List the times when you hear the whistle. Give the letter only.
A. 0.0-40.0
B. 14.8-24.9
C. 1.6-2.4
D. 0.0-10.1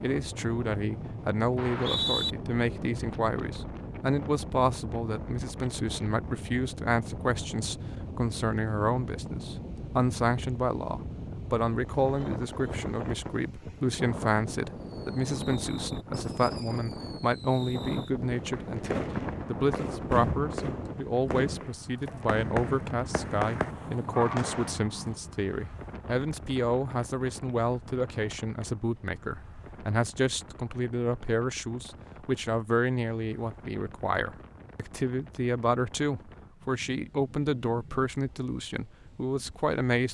C.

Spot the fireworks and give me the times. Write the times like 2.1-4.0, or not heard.
14.8-24.9.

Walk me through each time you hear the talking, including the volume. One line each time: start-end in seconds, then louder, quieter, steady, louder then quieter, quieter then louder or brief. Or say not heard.
0.0-40.0 steady.